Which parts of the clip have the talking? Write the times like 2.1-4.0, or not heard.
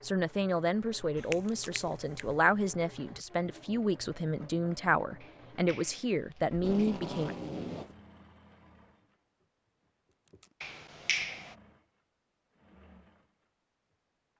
0.0-7.3.